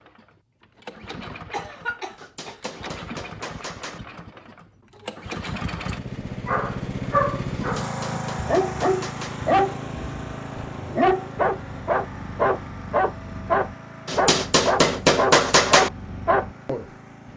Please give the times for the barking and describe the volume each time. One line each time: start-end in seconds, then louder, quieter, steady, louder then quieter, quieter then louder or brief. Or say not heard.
6.5-16.9 steady.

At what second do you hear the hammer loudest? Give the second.
15 s.